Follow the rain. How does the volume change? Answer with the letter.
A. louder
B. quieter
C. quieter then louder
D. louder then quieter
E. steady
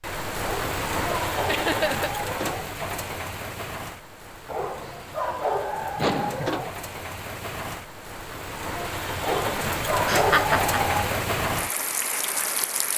C.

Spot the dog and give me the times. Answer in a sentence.
You can hear the dog from 0.4 to 2.7 s, from 4.5 to 6.8 s and from 9.2 to 11.1 s.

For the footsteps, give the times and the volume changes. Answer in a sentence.
You can't hear the footsteps here.